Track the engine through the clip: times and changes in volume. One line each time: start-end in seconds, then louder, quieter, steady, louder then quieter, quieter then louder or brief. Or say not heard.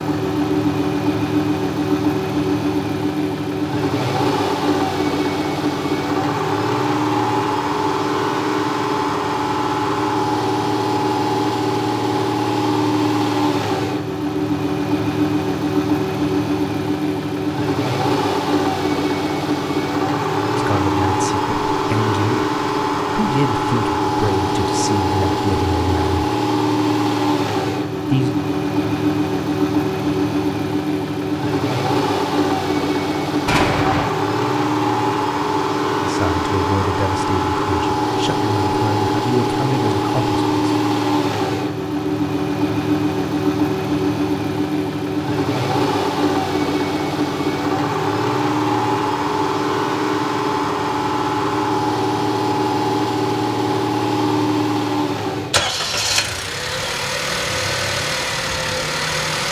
0.0-59.4 steady.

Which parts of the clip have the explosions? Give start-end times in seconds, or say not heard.
33.5-34.0.